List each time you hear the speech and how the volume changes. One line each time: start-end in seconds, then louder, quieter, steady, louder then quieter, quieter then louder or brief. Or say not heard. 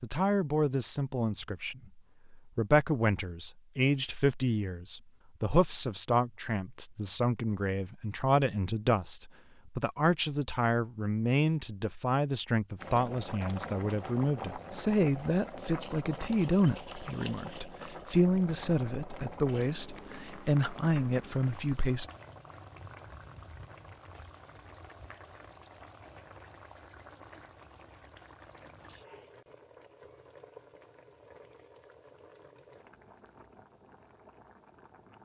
0.0-22.1 steady.